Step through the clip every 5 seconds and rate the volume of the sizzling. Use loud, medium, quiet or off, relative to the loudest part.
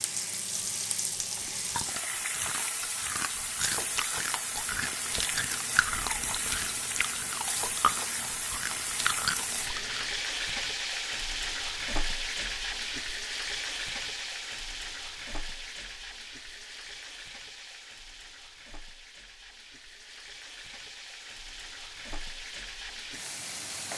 loud, loud, loud, medium, medium.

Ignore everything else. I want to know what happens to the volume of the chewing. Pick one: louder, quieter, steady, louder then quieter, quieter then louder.
louder.